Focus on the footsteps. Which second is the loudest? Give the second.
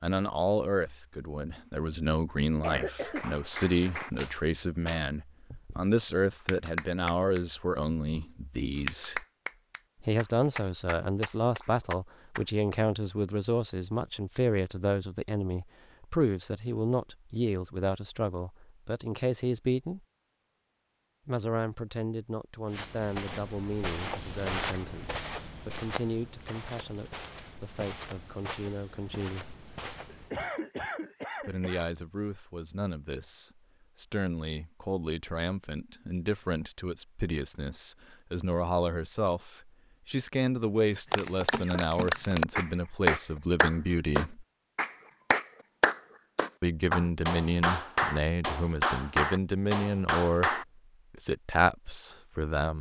25 s.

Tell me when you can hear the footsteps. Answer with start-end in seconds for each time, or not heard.
22.6-30.4.